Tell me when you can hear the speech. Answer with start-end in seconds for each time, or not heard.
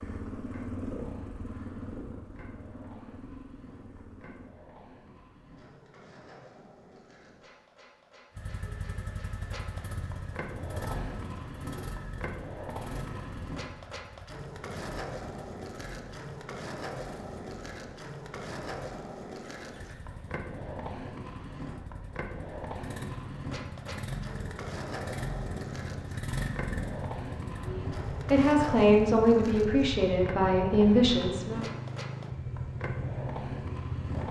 27.6-31.6.